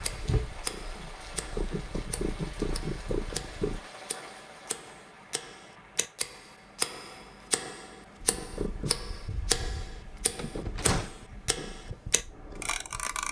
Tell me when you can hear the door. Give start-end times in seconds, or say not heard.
10.3-11.2.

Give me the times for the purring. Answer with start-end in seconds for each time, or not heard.
0.0-3.8, 8.2-13.2.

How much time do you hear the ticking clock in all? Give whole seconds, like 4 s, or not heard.
13 s.